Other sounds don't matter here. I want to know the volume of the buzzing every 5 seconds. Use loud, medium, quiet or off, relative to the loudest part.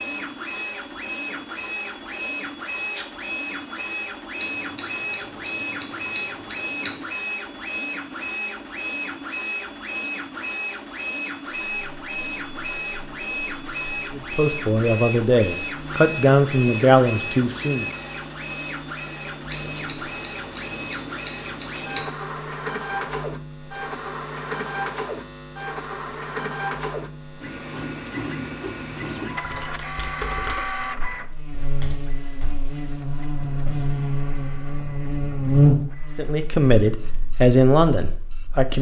off, off, quiet, quiet, quiet, quiet, medium, loud.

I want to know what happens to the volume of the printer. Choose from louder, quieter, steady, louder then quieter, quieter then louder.
quieter.